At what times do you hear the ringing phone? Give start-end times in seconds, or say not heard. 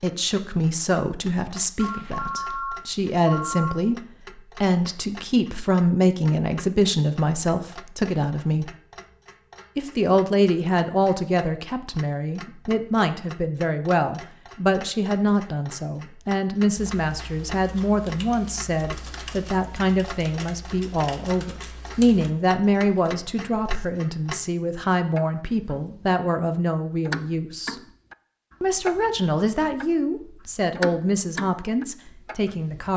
1.8-3.8.